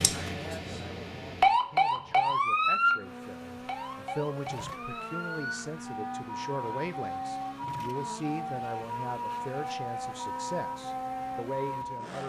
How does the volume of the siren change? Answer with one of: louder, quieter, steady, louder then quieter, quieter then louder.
quieter.